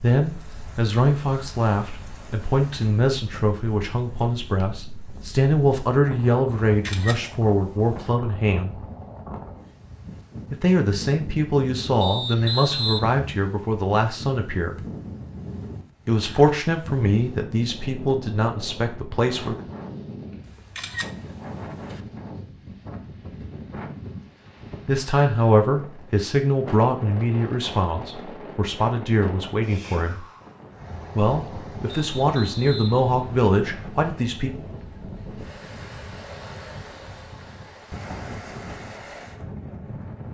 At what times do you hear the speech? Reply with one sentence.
You can hear the speech from 0.0 to 8.8 s, from 10.5 to 14.8 s, from 16.1 to 19.6 s, from 24.9 to 30.2 s and from 31.1 to 34.5 s.